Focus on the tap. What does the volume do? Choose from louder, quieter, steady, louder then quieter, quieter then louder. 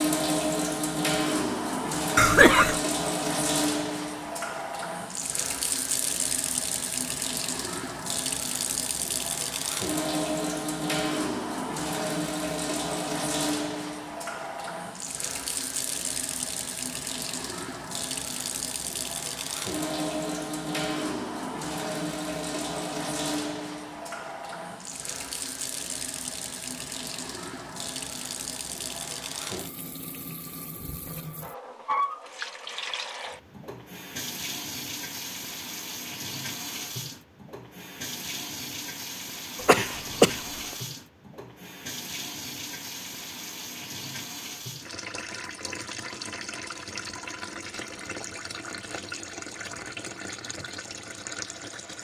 quieter.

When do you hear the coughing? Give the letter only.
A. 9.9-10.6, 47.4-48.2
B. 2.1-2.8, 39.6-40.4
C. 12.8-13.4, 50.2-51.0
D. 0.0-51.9
B.